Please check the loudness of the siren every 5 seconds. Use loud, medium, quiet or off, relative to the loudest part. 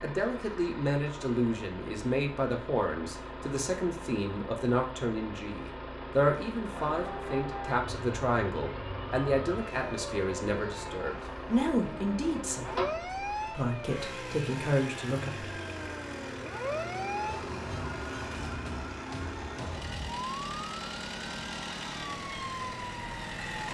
off, loud, loud, loud, loud.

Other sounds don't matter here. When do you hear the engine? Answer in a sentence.
You can hear the engine from 0.0 to 23.6 s.